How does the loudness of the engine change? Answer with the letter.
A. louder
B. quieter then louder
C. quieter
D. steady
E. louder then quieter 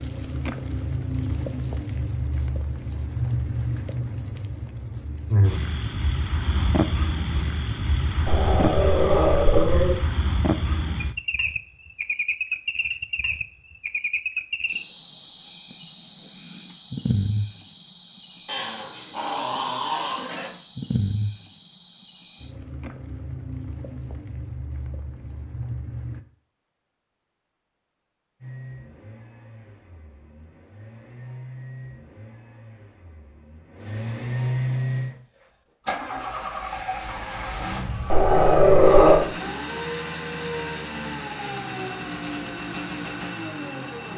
A.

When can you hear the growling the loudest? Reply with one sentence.
The volume of the growling peaks at 39 seconds.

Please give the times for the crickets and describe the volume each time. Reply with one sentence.
The crickets can be heard from 0.0 to 26.2 s, getting quieter.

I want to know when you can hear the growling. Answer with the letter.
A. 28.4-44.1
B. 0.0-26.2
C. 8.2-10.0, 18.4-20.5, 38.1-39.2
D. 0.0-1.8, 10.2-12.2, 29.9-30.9
C.